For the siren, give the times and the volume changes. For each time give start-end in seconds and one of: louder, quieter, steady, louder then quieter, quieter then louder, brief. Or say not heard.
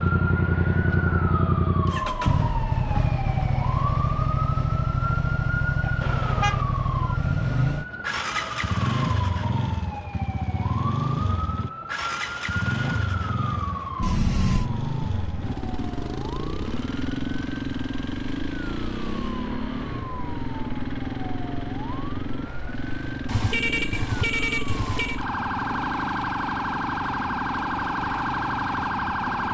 0.0-29.4 quieter then louder.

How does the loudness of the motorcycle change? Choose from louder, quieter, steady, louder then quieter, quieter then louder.
quieter.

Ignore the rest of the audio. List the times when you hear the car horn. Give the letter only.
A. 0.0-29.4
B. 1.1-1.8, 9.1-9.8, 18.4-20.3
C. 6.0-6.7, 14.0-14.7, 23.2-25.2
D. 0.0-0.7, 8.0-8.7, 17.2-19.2
C.